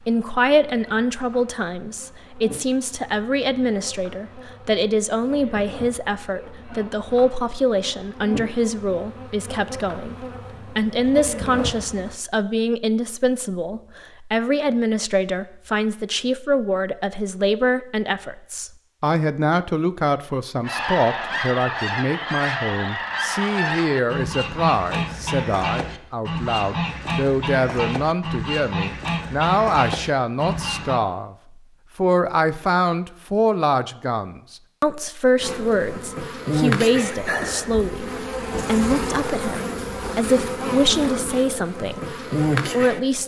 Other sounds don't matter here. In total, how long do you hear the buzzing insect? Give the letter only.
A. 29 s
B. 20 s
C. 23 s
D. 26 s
B.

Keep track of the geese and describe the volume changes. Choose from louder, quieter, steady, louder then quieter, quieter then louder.
steady.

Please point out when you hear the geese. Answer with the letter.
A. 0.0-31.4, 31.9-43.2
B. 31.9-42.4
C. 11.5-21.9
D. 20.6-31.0
D.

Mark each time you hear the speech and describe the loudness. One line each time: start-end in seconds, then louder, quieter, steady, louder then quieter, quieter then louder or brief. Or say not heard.
0.0-31.4 steady
31.9-43.2 steady.